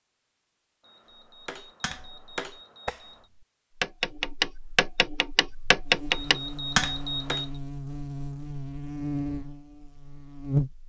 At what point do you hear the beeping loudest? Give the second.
7 s.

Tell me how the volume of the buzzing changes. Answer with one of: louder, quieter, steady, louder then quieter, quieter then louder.
louder then quieter.